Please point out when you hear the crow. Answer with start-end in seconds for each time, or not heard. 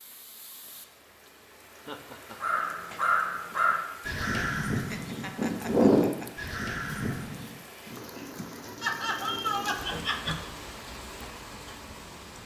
2.4-7.5.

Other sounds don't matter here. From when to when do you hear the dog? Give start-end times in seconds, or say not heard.
not heard.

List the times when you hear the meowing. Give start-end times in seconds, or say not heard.
not heard.